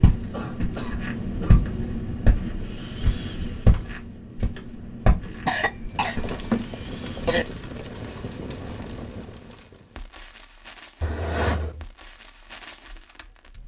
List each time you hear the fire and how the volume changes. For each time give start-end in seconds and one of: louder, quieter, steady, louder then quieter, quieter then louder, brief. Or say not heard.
5.8-13.6 quieter.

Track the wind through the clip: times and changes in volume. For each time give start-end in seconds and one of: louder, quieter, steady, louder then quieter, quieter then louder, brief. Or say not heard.
0.0-9.5 quieter.